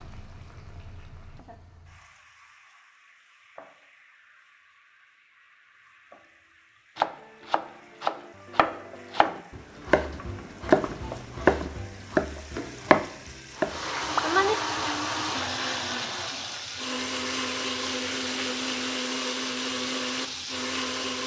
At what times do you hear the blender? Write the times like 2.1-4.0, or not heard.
13.5-21.2.